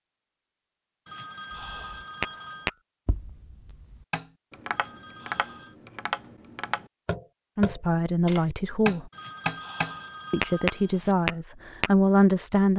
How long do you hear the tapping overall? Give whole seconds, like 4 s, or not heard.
10 s.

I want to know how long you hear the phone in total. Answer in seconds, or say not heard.
5 s.